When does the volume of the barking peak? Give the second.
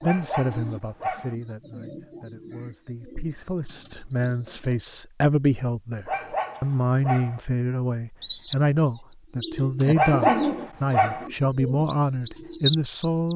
10 s.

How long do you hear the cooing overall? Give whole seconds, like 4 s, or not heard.
10 s.